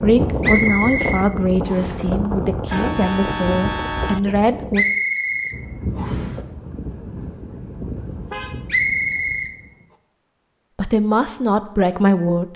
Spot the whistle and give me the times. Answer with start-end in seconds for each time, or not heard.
0.4-2.0, 4.7-6.3, 8.7-9.6.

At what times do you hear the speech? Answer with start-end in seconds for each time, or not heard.
0.0-4.8, 10.8-12.5.